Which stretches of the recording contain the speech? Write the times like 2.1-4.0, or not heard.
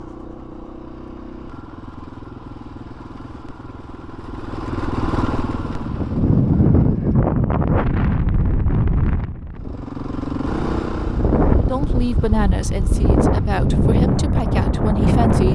11.6-15.4.